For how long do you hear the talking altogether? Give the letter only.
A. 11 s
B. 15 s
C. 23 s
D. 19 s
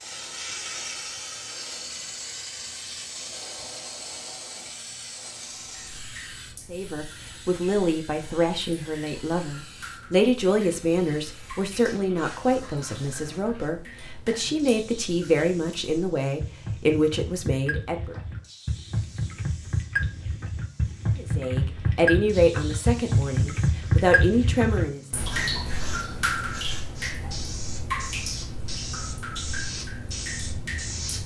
B.